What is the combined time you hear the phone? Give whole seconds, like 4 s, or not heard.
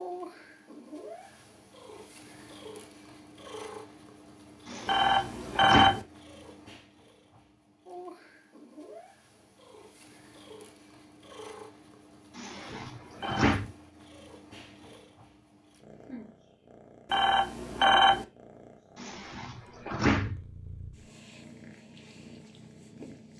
3 s.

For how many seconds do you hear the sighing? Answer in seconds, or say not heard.
4 s.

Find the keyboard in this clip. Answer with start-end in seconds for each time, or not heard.
not heard.